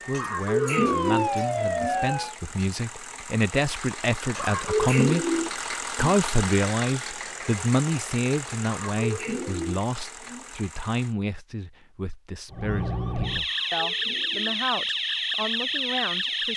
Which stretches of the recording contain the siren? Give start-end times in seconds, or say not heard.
0.0-2.4, 12.5-16.5.